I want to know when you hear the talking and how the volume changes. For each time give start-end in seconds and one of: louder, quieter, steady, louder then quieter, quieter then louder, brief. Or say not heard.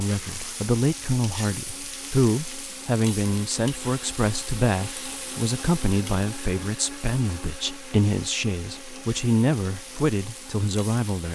0.0-11.2 steady.